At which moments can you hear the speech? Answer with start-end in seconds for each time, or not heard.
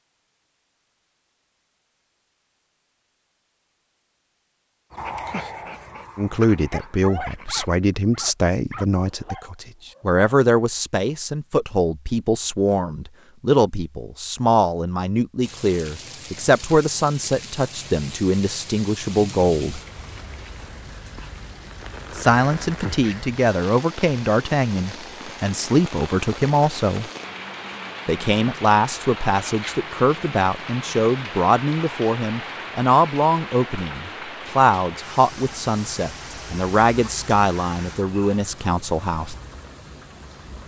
6.2-19.8, 22.1-27.1, 28.1-39.4.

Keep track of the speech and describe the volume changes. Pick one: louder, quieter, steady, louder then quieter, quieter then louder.
steady.